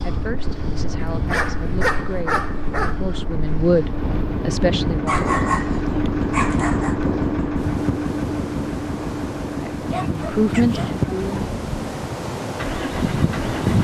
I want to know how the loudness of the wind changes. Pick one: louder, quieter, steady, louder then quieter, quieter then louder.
louder.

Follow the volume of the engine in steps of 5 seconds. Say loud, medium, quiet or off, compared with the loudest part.
medium, loud, medium.